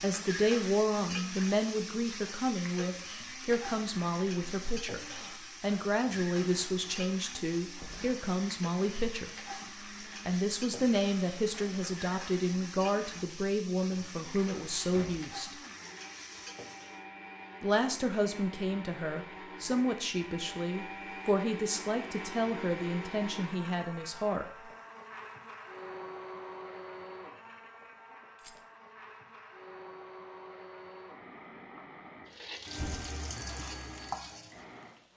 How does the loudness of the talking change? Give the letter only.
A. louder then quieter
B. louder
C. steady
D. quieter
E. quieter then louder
C.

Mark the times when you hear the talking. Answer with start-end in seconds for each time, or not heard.
0.0-9.5, 10.2-15.6, 17.6-24.4.